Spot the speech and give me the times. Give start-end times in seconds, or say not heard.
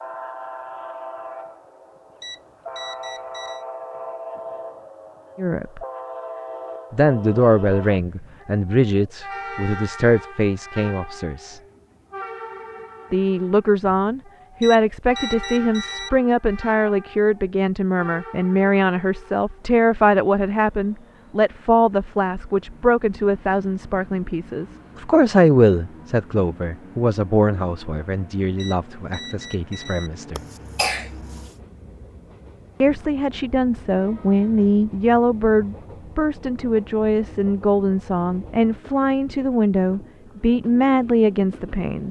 5.3-5.8, 6.9-11.6, 13.1-30.4, 32.8-42.0.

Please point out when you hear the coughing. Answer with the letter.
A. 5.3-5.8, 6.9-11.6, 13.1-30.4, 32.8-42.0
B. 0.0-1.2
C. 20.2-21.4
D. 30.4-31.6
D.